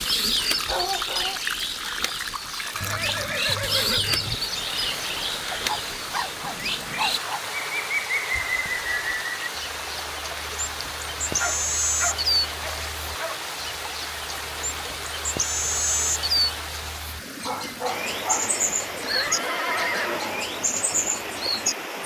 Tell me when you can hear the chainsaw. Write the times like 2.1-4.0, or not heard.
not heard.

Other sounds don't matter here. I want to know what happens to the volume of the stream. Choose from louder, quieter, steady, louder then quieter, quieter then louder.
steady.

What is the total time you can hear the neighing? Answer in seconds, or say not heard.
4 s.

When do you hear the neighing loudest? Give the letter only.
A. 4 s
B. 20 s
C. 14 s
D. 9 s
B.